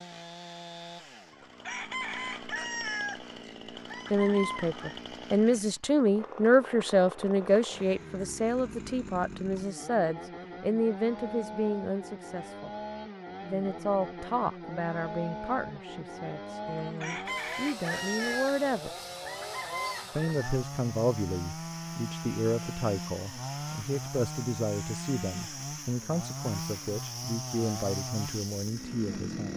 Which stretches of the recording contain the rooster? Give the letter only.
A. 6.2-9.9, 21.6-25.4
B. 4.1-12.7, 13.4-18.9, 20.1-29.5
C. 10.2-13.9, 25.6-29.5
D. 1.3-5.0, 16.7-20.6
D.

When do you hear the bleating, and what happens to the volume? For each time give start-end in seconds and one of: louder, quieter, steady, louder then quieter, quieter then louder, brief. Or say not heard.
not heard.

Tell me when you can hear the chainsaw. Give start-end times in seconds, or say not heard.
0.0-29.5.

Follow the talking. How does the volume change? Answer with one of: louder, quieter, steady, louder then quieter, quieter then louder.
quieter.